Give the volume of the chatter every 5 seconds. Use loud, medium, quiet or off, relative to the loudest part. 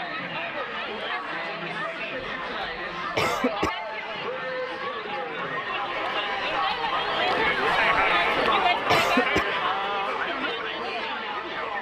medium, loud, medium.